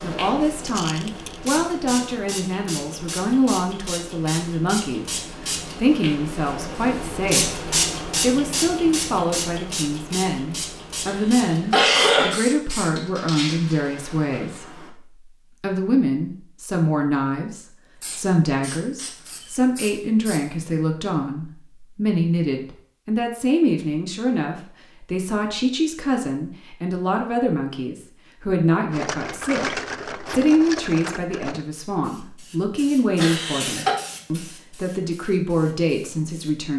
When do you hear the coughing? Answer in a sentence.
You can hear the coughing from 11.1 to 12.3 s and from 33.1 to 34.0 s.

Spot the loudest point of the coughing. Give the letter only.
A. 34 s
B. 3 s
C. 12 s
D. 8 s
C.